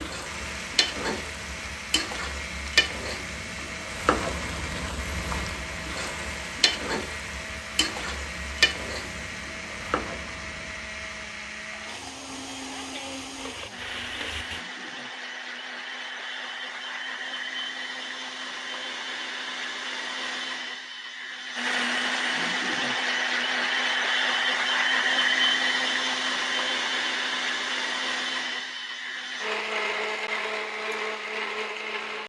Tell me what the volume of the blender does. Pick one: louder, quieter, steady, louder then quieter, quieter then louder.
louder.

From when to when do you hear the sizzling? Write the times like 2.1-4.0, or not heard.
0.0-14.6.